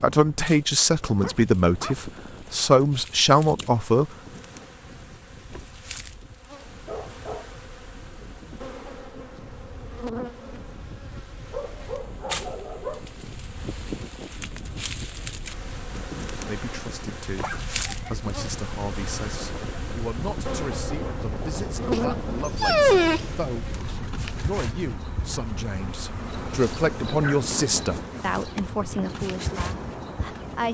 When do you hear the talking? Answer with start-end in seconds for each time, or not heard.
0.0-4.1, 16.4-23.7, 24.4-30.7.